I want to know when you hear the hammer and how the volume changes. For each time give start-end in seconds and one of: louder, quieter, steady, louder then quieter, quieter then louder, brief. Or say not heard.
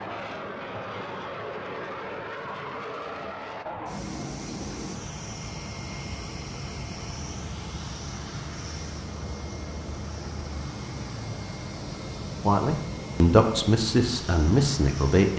not heard.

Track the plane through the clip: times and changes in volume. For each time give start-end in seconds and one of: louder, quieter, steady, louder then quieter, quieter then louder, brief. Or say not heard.
0.0-15.3 steady.